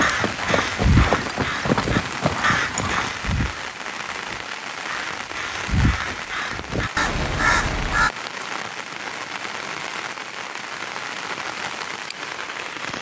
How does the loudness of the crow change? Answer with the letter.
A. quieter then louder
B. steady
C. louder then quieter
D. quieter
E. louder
A.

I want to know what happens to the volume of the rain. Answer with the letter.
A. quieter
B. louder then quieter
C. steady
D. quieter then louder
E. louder
C.